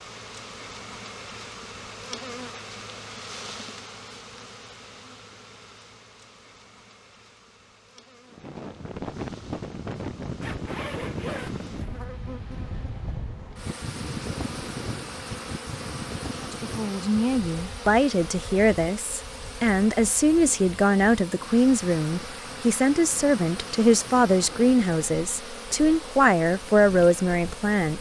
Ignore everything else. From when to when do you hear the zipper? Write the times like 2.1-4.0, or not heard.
10.4-12.0.